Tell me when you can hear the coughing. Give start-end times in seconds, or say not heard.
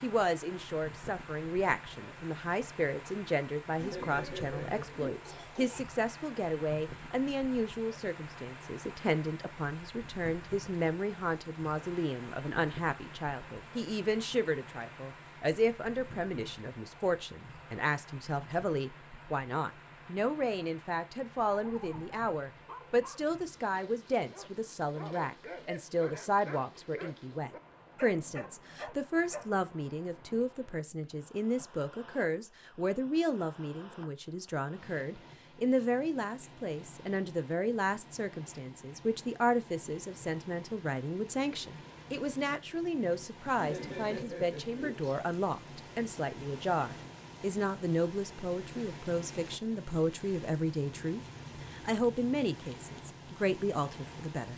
3.8-5.8, 43.5-45.2.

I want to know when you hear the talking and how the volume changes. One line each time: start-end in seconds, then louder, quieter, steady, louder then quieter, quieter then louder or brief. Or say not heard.
0.0-54.5 steady.